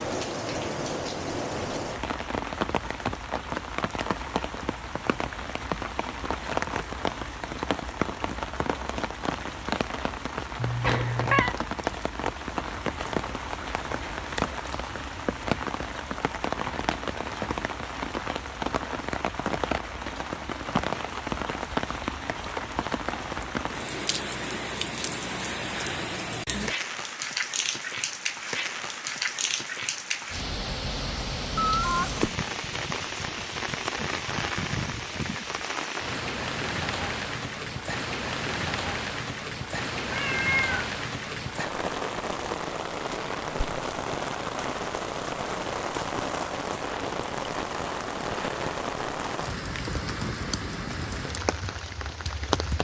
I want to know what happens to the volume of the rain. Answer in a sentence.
The volume of the rain stays about the same.